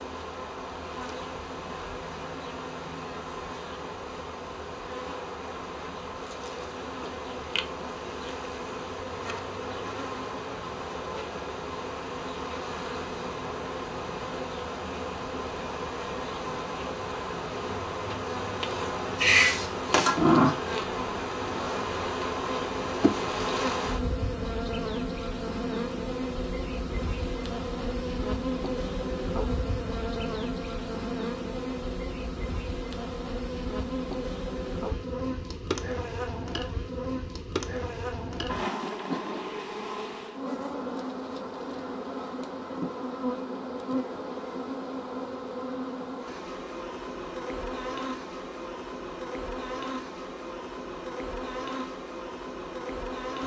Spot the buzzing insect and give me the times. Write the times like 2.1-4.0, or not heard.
0.0-53.4.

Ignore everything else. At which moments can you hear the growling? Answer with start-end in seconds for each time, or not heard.
19.1-20.6.